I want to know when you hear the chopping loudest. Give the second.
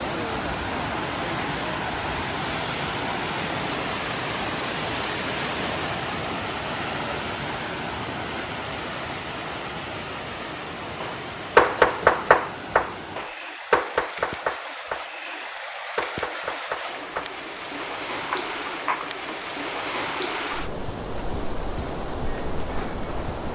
12 s.